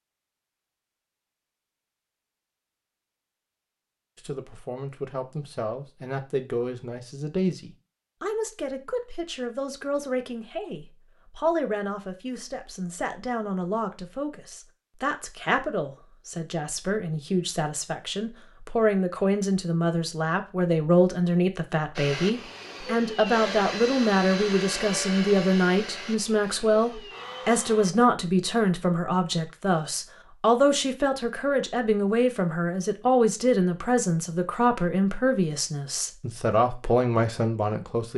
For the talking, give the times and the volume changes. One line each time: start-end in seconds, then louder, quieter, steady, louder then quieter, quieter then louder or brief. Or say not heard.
4.2-38.1 louder.